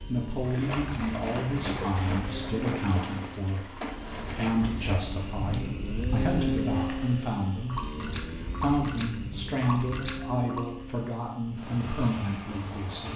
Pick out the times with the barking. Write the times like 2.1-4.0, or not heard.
not heard.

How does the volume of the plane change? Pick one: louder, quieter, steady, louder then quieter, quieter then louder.
louder then quieter.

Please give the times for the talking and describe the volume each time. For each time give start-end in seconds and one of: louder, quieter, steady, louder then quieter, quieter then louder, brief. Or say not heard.
0.1-13.1 steady.